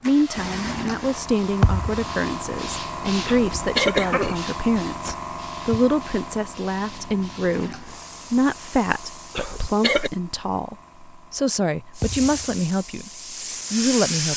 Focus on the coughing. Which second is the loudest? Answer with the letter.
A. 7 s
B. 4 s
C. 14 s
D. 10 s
B.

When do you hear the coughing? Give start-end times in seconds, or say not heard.
3.2-5.2, 9.3-10.1.